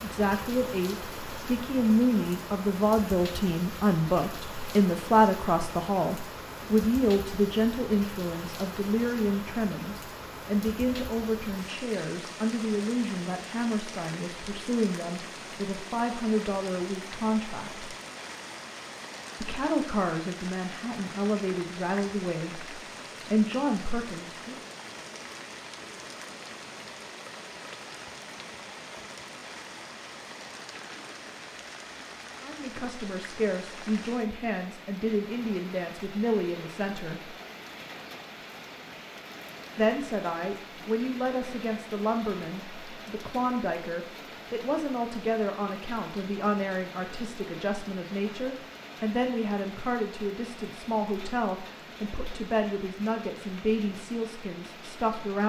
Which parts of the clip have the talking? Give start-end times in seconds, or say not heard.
0.0-17.9, 19.4-24.6, 32.4-37.3, 39.8-55.4.